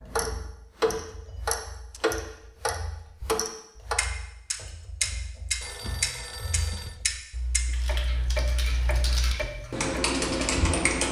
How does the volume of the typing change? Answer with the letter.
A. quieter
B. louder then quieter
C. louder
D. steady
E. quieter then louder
C.